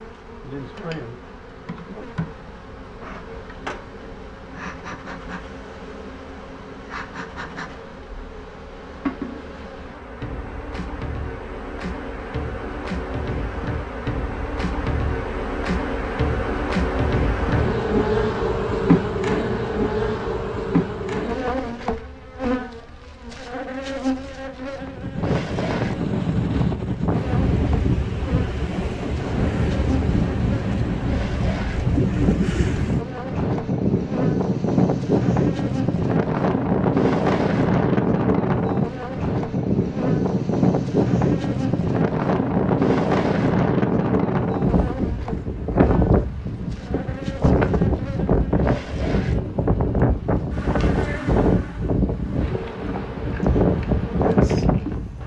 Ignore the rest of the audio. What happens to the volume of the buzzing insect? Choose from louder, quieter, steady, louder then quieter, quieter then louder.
louder then quieter.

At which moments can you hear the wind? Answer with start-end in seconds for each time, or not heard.
24.8-55.2.